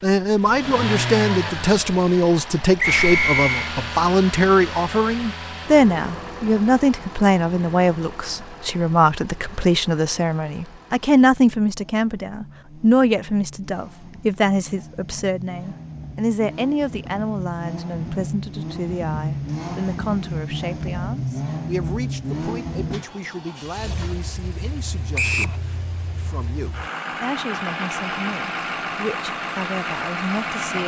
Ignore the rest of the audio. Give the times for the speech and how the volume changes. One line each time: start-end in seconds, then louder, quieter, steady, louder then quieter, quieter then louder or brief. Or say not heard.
0.0-30.8 quieter.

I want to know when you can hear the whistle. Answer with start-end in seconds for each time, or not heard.
2.8-3.7, 25.1-25.6.